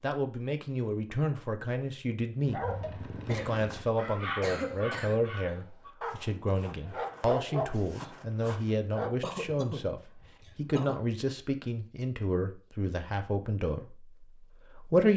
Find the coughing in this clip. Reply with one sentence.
You can hear the coughing from 3.2 to 5.2 s and from 9.2 to 11.0 s.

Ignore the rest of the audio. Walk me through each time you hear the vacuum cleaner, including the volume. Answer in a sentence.
You can't hear the vacuum cleaner here.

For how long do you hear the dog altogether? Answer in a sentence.
You can hear the dog for 7 seconds altogether.